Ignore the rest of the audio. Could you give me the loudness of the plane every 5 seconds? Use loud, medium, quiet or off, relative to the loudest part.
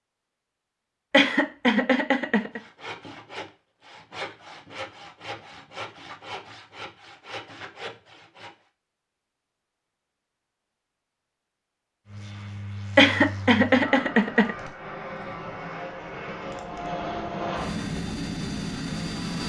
off, off, medium, loud.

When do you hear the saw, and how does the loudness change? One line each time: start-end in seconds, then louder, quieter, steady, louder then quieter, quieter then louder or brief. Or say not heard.
2.4-8.6 steady.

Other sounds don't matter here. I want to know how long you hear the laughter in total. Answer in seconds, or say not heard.
3 s.